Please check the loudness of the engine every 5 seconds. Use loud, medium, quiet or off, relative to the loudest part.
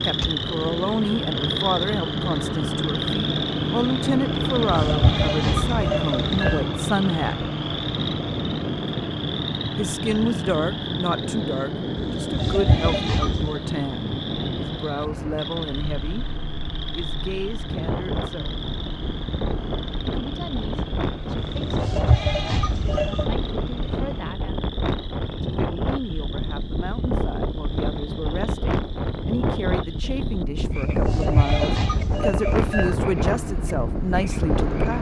loud, loud, medium, medium, medium, off, medium.